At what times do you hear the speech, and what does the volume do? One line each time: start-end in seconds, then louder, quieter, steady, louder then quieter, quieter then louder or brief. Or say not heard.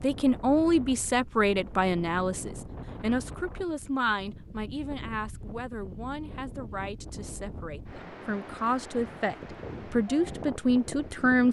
0.0-11.4 quieter then louder.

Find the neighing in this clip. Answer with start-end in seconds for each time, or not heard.
not heard.